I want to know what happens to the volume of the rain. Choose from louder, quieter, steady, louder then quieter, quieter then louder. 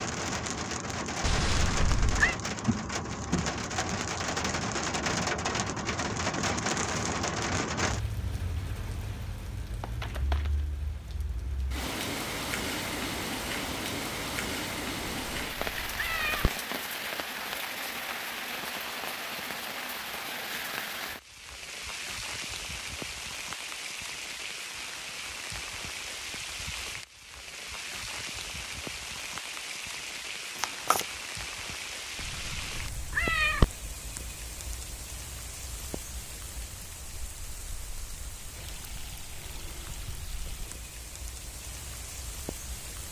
quieter.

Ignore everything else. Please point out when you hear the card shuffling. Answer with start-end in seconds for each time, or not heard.
9.8-10.7, 30.6-31.1.